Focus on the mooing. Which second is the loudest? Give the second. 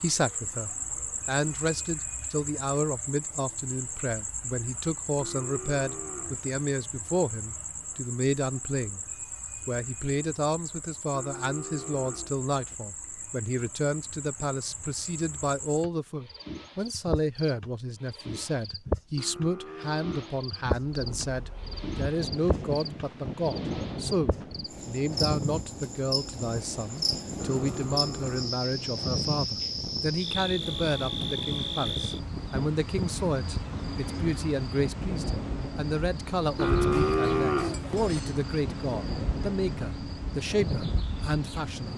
37 s.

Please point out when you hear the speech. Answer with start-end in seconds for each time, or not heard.
0.0-9.0, 9.7-41.9.